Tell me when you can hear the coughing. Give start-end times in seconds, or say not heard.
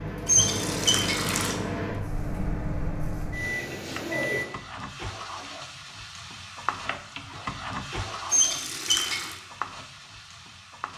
not heard.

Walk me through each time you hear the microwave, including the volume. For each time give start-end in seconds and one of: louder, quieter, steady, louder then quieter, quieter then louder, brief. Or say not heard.
0.0-4.5 steady.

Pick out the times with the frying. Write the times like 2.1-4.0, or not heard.
3.8-10.9.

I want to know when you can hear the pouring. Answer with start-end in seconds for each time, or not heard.
0.2-1.6, 8.3-9.3.